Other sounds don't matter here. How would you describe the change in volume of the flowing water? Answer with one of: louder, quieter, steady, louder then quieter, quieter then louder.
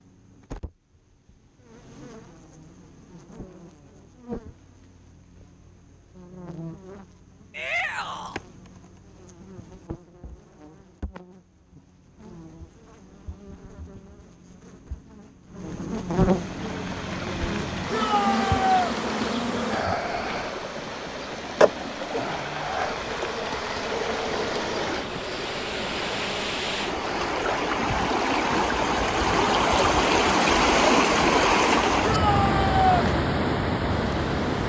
louder.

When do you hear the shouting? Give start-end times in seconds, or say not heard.
7.5-8.4, 17.9-18.9, 32.0-33.0.